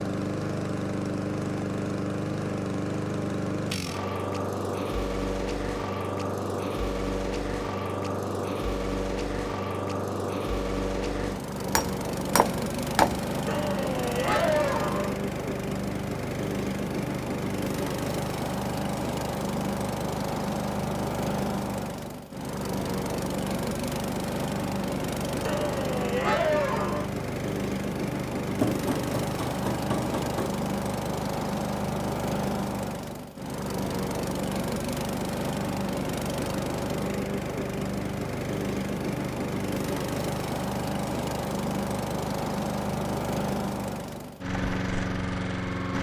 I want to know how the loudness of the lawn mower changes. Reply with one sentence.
The loudness of the lawn mower stays about the same.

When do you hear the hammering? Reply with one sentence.
You can hear the hammering from 11.6 to 13.2 s and from 28.6 to 30.5 s.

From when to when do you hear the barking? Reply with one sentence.
The barking can be heard from 13.4 to 15.2 s and from 25.4 to 27.1 s.